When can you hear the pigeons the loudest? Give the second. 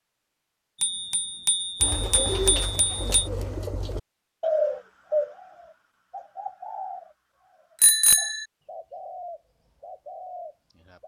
5 s.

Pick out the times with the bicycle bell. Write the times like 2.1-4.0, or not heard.
0.8-3.0, 7.8-8.4.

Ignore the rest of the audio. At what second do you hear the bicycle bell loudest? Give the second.
8 s.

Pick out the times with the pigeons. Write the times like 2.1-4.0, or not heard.
1.8-11.0.